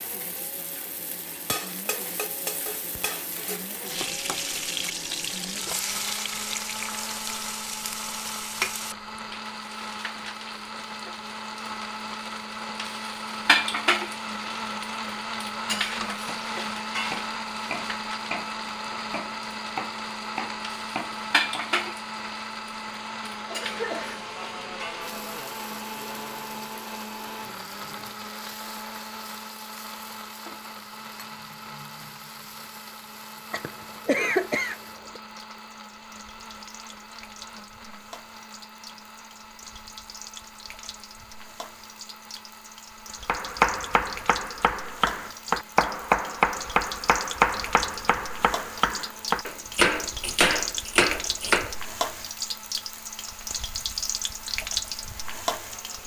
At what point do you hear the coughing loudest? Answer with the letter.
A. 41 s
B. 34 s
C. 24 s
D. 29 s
B.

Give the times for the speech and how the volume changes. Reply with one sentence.
You can't hear the speech here.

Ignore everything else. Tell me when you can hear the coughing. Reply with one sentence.
You can hear the coughing from 23.4 to 24.2 s and from 33.5 to 35.2 s.